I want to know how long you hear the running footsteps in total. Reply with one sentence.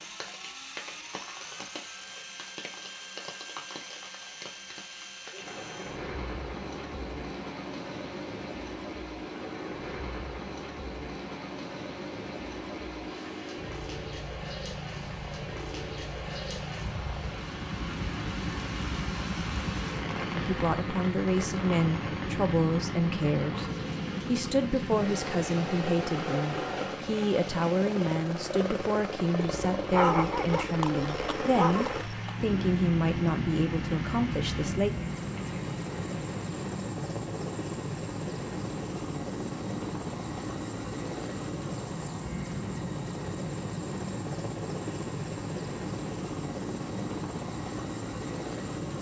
You can't hear the running footsteps here.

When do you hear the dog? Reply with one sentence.
You can hear the dog from 29.9 to 32.4 s.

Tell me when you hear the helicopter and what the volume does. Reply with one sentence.
The helicopter can be heard from 0.0 to 48.9 s, getting louder.